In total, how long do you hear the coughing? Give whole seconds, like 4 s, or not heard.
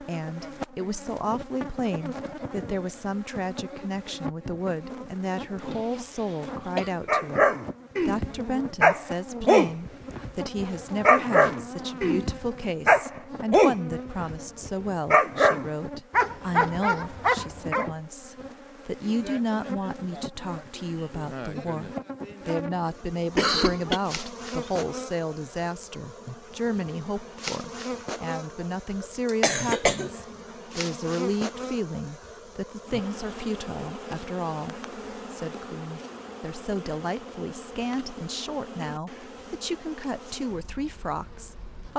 3 s.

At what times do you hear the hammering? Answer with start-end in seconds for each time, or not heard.
not heard.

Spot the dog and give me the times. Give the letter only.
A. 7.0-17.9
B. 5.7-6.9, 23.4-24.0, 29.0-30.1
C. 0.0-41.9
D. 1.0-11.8
A.